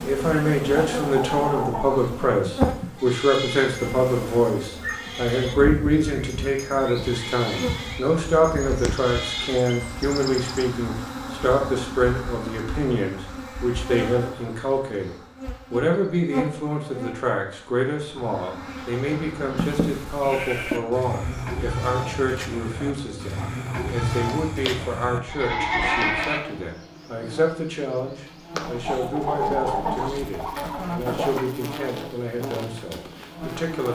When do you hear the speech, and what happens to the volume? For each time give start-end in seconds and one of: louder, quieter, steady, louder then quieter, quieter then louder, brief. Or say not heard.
0.0-33.9 quieter.